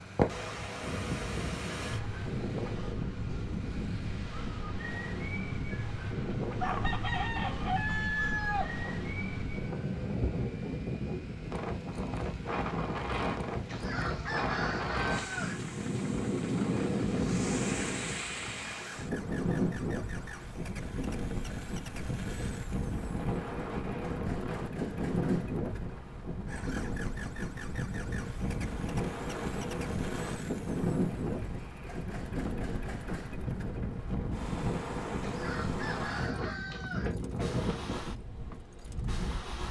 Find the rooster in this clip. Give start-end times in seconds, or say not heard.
6.4-9.1, 13.7-15.6, 35.2-37.1.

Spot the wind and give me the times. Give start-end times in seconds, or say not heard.
0.0-39.6.